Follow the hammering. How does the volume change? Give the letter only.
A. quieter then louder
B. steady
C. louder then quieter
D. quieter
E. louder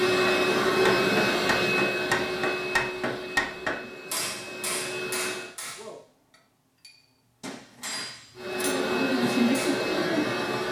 A.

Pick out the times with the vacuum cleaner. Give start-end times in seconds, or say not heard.
0.0-5.5, 8.3-10.6.